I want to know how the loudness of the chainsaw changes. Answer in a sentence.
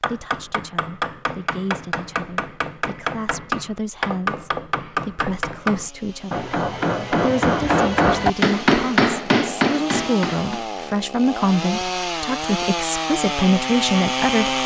The loudness of the chainsaw goes up.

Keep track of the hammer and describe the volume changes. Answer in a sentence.
The loudness of the hammer goes up.